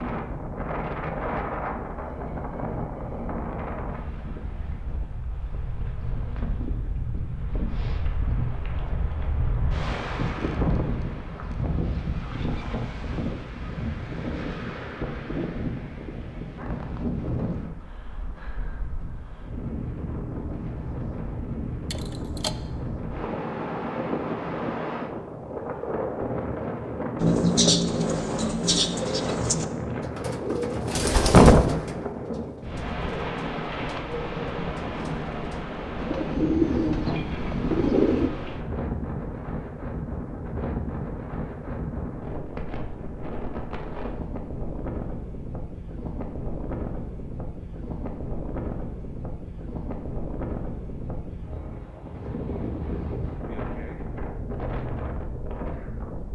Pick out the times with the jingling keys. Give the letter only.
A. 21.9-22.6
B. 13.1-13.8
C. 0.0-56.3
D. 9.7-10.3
A.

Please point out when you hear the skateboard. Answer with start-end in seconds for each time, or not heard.
not heard.